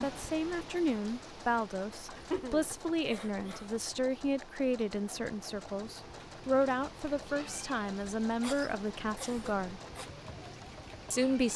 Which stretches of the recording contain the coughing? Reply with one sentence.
You can hear the coughing from 2.0 to 3.6 s and from 8.4 to 10.1 s.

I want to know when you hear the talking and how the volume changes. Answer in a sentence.
You can hear the talking from 0.0 to 9.8 s, at a steady volume; and briefly from 11.1 to 11.5 s.